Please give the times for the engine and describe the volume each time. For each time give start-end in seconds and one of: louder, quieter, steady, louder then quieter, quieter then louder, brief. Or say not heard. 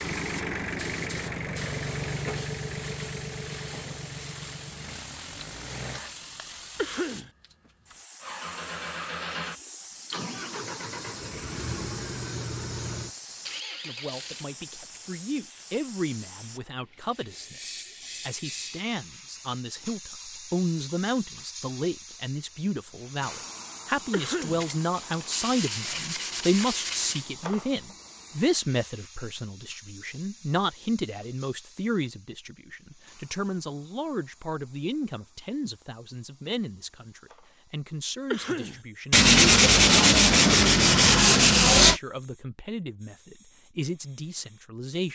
0.0-6.2 quieter
8.2-14.5 steady.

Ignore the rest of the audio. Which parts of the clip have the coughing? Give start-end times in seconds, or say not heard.
6.8-7.3, 24.1-24.6, 38.3-38.8.